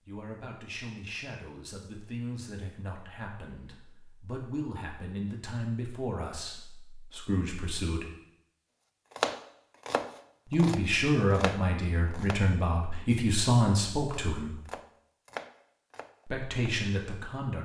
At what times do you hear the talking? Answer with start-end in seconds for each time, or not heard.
0.1-8.1, 10.4-14.6, 16.2-17.6.